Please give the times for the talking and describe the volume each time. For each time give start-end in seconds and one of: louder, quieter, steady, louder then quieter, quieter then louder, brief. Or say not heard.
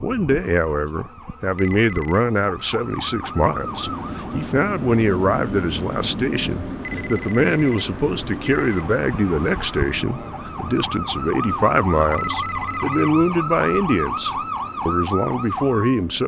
0.0-16.2 steady.